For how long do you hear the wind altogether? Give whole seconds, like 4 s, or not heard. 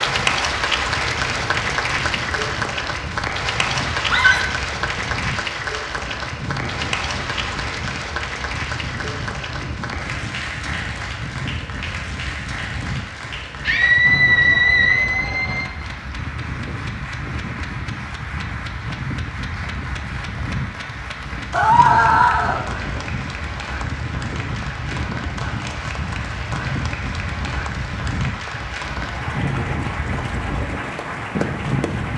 32 s.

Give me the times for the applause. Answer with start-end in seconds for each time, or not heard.
0.0-32.1.